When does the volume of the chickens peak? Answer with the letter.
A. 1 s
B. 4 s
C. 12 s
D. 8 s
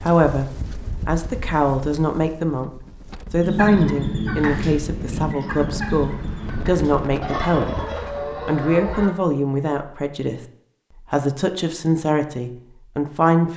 B.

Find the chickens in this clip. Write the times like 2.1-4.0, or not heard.
3.4-9.1.